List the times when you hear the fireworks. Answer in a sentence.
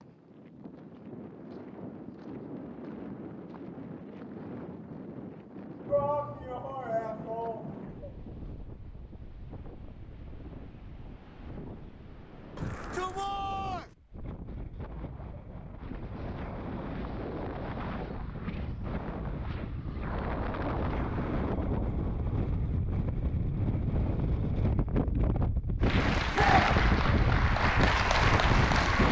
You can't hear the fireworks here.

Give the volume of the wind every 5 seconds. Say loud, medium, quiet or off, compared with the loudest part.
quiet, quiet, quiet, medium, loud, loud.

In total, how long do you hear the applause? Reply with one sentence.
The applause can be heard for 3 seconds in total.